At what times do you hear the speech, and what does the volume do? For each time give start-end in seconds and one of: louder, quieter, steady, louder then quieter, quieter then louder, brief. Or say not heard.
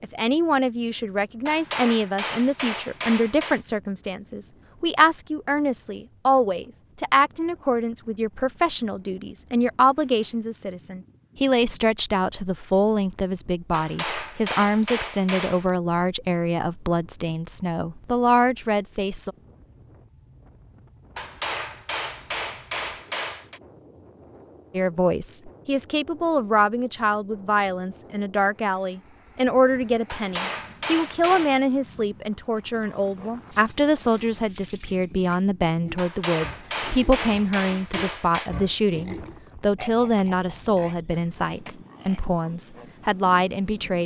0.0-19.3 steady
24.7-44.0 steady.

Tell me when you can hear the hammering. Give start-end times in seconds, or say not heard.
1.4-3.6, 13.7-15.7, 21.1-23.6, 30.1-31.6, 36.0-38.5.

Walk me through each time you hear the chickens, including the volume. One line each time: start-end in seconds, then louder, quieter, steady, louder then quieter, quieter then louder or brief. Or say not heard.
not heard.